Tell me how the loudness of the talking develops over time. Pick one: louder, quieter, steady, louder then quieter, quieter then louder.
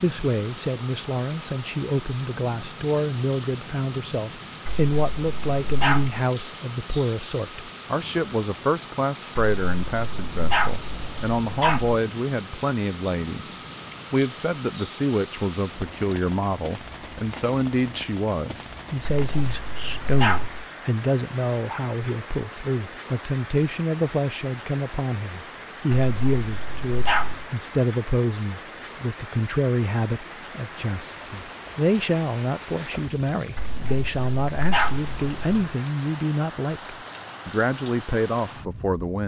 steady.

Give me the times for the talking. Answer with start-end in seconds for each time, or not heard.
0.0-39.2.